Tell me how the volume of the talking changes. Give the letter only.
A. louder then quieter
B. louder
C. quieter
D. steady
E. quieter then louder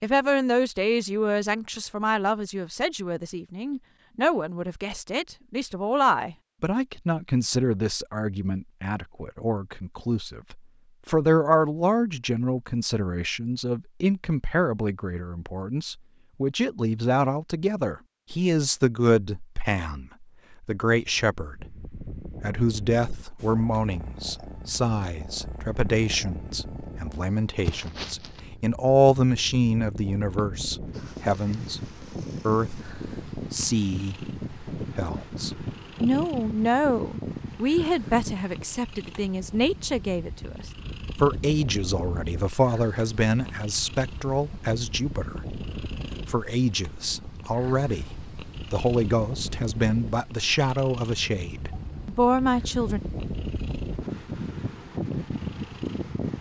D.